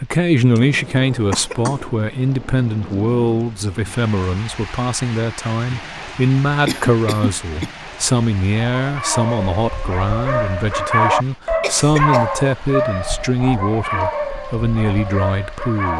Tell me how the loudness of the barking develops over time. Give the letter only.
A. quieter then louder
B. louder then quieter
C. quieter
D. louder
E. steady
B.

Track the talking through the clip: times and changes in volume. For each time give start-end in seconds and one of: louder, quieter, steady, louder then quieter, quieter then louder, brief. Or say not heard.
0.0-15.9 steady.